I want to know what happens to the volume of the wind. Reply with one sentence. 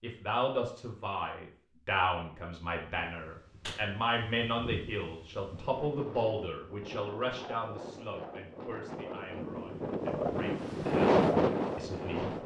The loudness of the wind goes up.